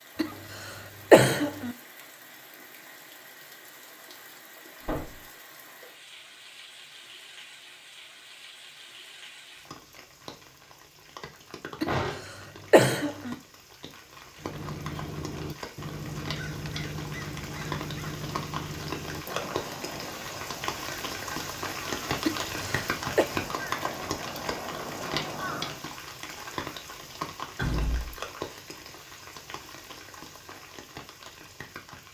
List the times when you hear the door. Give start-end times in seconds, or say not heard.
4.8-5.2, 11.8-12.7, 27.6-28.2.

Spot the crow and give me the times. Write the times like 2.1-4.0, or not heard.
14.3-25.9.